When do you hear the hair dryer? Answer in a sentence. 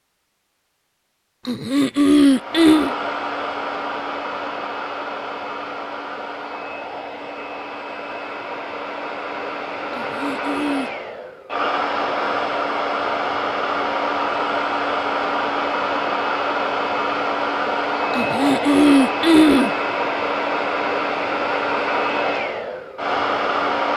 The hair dryer can be heard from 2.2 to 23.9 s.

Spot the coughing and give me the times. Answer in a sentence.
You can hear the coughing from 1.4 to 2.9 s, from 9.9 to 10.9 s and from 18.1 to 19.7 s.